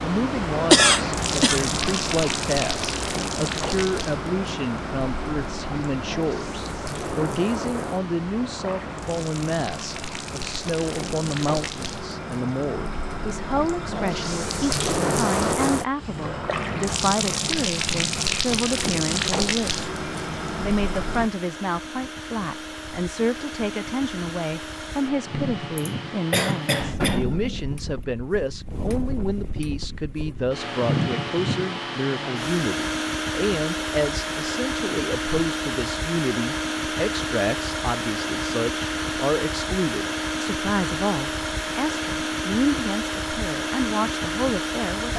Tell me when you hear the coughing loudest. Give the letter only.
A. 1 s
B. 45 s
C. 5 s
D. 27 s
A.